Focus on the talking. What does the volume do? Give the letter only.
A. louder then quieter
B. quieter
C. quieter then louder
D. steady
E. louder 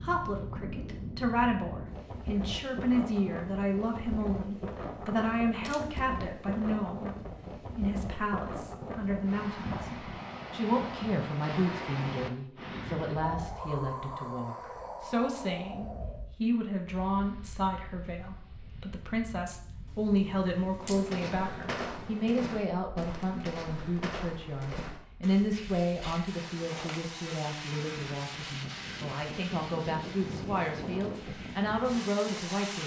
D.